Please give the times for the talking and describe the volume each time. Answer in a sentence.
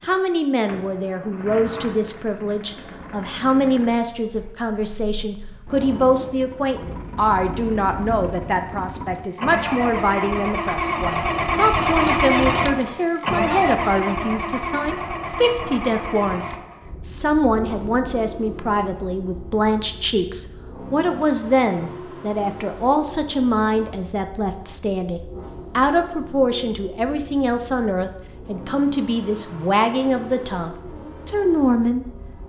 The talking can be heard from 0.0 to 32.0 s, at a steady volume.